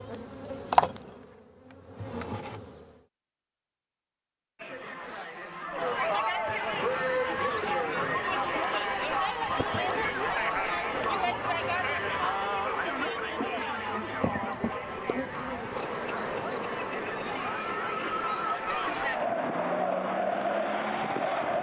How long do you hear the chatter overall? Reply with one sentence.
You can hear the chatter for 17 seconds altogether.